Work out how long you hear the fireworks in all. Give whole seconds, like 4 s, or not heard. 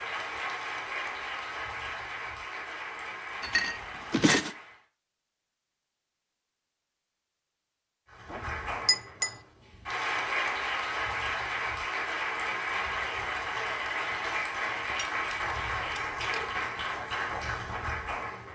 not heard.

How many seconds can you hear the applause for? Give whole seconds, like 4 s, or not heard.
15 s.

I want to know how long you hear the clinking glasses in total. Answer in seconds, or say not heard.
4 s.